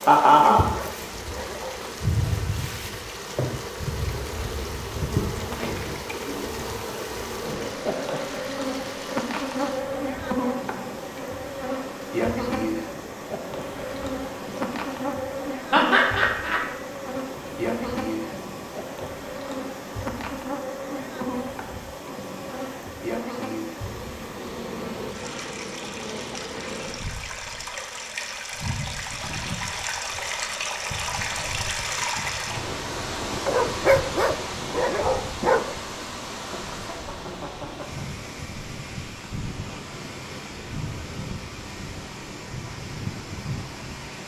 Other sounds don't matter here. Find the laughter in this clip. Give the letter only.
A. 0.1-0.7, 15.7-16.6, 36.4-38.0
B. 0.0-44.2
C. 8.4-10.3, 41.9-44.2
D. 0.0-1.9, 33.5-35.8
A.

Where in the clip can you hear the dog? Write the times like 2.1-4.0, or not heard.
0.0-1.9, 33.5-35.8.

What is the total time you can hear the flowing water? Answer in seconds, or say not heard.
44 s.